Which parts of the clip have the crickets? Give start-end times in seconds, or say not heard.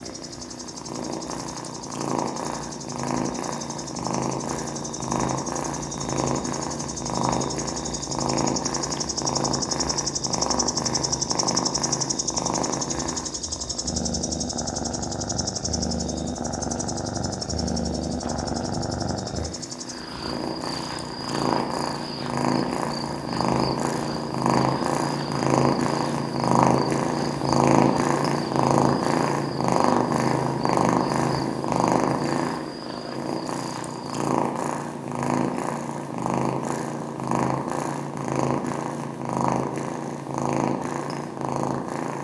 0.0-34.3.